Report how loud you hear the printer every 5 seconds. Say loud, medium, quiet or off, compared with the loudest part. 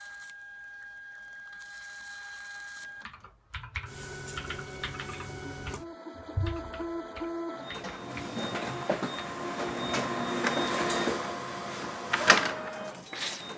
quiet, medium, loud.